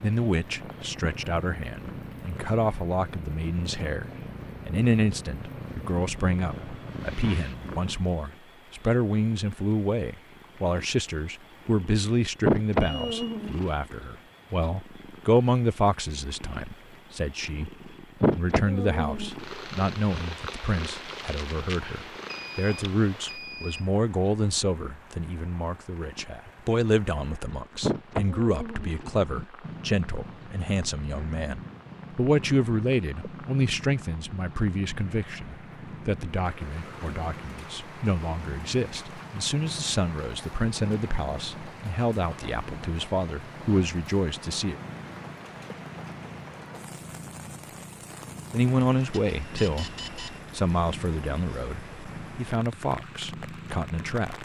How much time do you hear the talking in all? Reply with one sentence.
You can hear the talking for 51 seconds altogether.